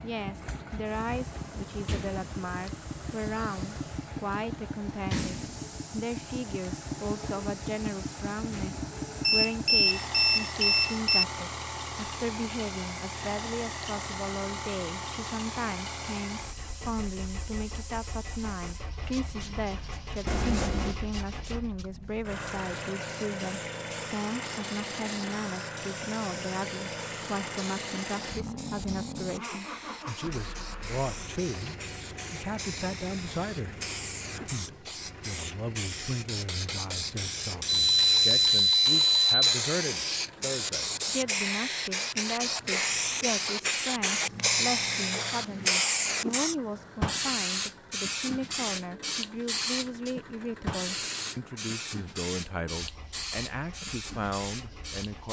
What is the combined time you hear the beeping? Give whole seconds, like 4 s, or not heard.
5 s.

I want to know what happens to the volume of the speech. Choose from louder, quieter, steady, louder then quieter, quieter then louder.
steady.